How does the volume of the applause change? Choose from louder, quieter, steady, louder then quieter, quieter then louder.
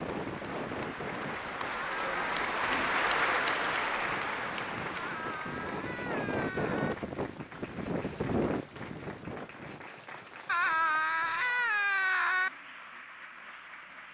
quieter.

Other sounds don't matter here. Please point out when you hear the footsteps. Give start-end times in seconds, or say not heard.
not heard.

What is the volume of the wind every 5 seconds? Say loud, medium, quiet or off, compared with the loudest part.
medium, loud, off.